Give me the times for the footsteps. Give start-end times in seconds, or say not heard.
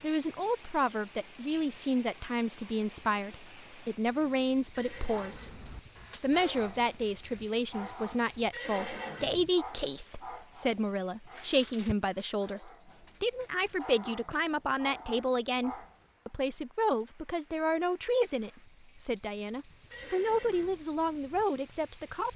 not heard.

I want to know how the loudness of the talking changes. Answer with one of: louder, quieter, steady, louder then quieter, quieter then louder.
steady.